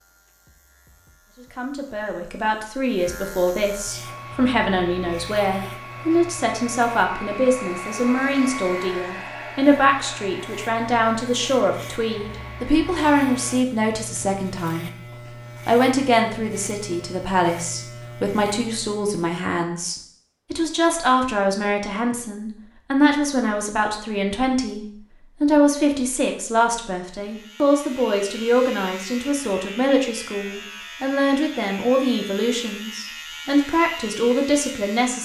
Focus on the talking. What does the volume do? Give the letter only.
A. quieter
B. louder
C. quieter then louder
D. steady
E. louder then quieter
D.